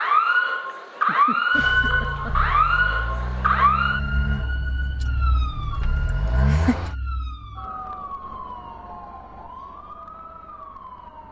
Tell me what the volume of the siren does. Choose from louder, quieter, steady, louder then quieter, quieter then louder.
quieter.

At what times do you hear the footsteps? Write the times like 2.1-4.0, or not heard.
not heard.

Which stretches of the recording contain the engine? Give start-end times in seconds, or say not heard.
1.6-7.0.